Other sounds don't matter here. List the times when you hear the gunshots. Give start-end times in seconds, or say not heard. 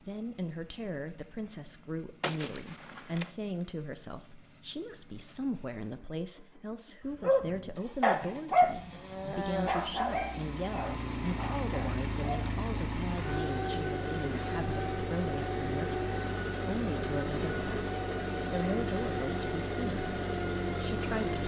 2.2-3.3.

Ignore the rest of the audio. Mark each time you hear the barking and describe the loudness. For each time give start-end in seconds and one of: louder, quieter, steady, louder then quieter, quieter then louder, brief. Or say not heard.
7.2-12.5 quieter.